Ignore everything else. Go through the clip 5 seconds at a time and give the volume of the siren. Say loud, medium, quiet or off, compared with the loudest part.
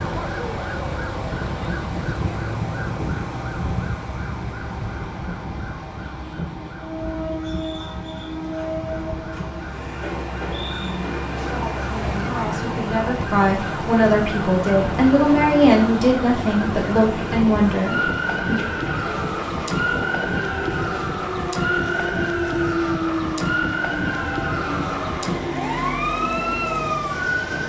loud, medium, loud, loud, loud, loud.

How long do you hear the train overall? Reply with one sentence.
You can hear the train for 21 seconds altogether.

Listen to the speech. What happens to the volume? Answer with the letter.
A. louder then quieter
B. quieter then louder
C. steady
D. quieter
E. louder
E.